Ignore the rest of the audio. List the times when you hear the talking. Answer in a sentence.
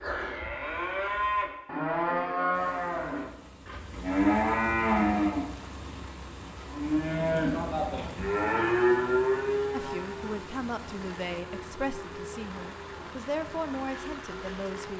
You can hear the talking from 9.7 to 14.9 s.